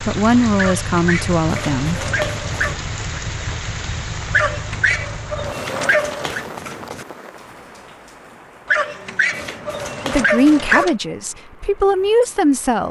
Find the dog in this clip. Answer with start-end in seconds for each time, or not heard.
0.6-2.8, 4.3-6.5, 8.7-10.9.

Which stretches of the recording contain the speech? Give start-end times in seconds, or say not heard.
0.1-2.0, 10.1-12.8.